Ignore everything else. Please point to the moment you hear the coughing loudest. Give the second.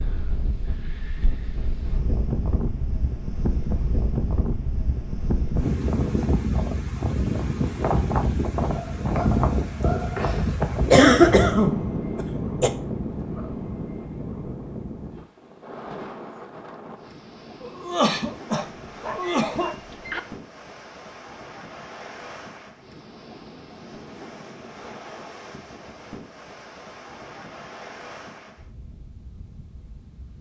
11 s.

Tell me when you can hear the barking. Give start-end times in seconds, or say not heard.
8.8-10.7, 18.4-20.2.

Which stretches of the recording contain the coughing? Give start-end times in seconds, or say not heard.
10.9-12.7, 17.6-19.7.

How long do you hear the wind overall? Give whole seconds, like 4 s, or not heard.
30 s.